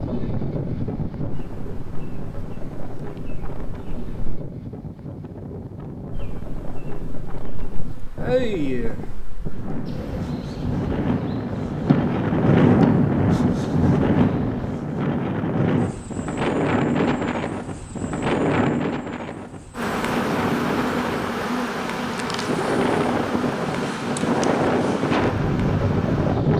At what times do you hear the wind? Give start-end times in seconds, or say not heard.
0.0-26.5.